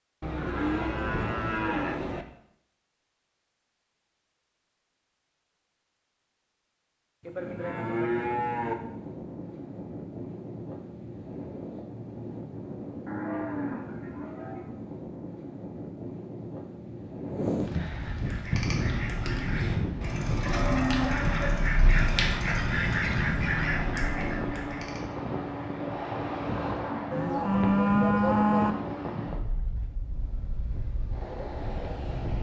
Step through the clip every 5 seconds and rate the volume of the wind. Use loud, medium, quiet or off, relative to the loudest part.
off, medium, medium, loud, loud, loud, medium.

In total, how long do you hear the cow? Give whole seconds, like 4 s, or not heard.
8 s.